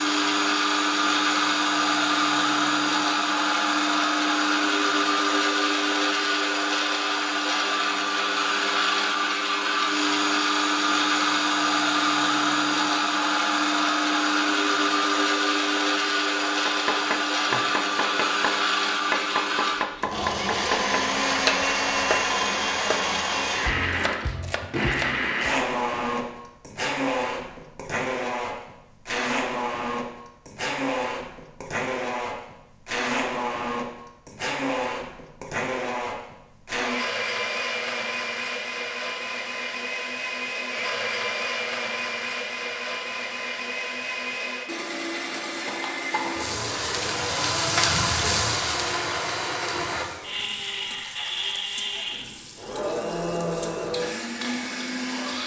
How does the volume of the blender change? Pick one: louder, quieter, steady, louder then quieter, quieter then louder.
quieter.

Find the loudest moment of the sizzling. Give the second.
48 s.